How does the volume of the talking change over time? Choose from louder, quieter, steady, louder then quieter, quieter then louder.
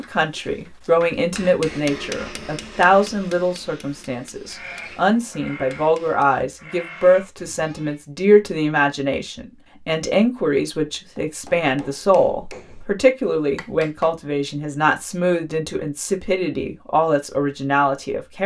steady.